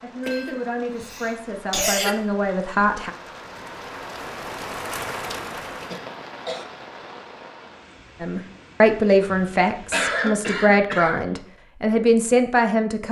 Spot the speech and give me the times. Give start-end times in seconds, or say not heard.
0.0-3.1, 8.2-13.0.